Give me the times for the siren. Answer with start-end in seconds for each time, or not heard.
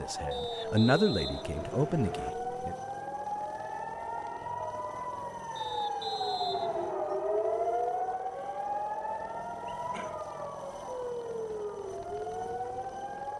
0.0-13.3.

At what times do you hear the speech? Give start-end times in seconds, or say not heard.
0.0-2.8.